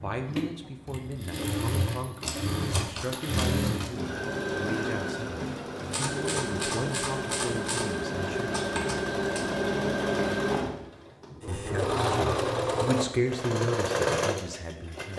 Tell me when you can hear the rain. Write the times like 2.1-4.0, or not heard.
not heard.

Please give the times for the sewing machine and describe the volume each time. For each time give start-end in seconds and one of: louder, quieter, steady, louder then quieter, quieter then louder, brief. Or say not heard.
0.0-15.1 louder.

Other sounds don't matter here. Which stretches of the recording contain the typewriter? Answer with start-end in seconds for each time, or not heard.
2.2-3.9, 5.9-9.5.